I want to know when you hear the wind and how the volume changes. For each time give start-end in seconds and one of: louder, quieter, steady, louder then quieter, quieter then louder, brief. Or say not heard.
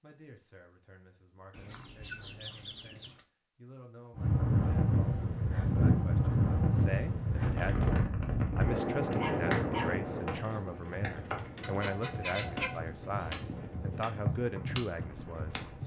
4.2-15.8 quieter.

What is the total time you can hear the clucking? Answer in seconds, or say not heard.
3 s.